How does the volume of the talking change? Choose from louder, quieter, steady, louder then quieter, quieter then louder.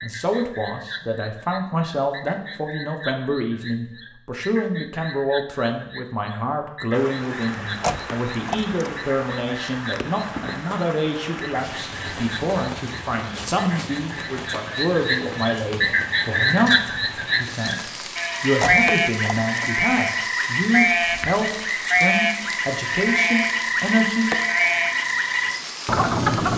steady.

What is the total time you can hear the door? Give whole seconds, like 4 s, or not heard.
2 s.